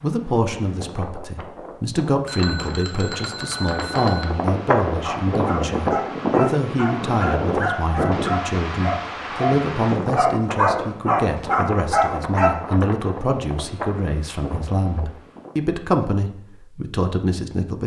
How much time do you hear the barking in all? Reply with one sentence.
The barking can be heard for 8 seconds in total.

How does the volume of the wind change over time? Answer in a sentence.
The loudness of the wind goes up, then down.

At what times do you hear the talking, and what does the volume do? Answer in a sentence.
You can hear the talking from 0.0 to 17.8 s, at a steady volume.